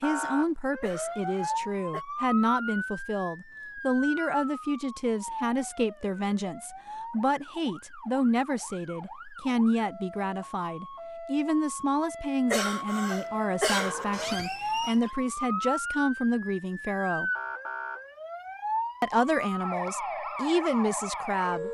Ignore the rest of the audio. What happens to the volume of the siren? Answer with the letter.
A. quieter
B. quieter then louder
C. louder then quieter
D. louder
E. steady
B.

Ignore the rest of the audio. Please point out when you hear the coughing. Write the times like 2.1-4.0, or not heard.
0.8-2.0, 12.5-14.3.